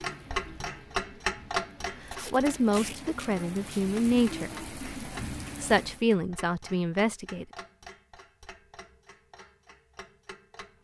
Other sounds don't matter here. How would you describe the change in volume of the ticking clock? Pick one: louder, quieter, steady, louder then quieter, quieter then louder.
quieter.